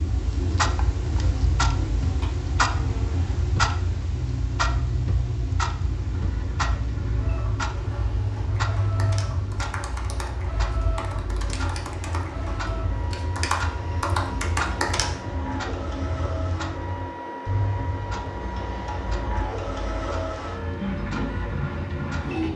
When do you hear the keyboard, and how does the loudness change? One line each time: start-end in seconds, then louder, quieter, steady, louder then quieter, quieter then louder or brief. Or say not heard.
8.9-15.1 louder.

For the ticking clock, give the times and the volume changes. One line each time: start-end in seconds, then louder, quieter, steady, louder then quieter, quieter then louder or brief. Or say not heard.
0.0-22.4 quieter.